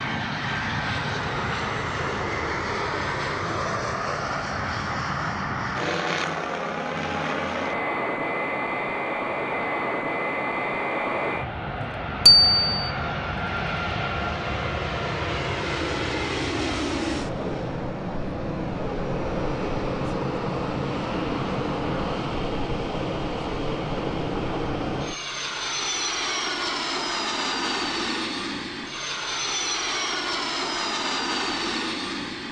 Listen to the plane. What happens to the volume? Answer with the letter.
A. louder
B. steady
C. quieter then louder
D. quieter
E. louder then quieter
B.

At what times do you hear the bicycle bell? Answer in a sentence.
You can hear the bicycle bell from 12.2 to 12.9 s.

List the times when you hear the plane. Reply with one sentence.
The plane can be heard from 0.0 to 32.4 s.